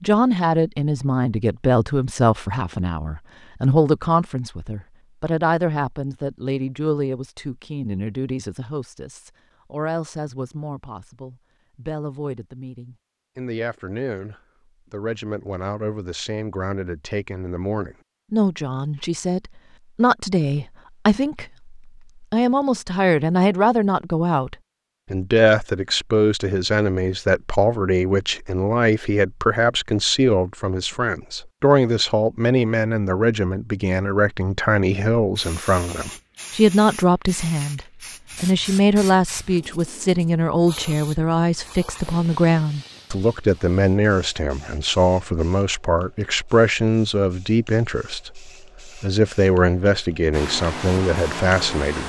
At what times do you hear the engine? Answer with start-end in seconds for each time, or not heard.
50.3-52.0.